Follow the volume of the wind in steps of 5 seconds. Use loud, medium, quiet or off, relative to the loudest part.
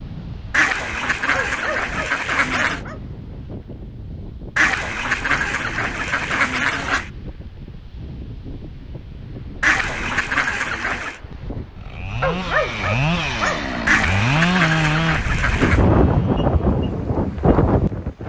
quiet, quiet, quiet, loud.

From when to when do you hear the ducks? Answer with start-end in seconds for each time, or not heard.
0.5-2.8, 4.5-7.1, 9.6-11.2, 13.8-15.8.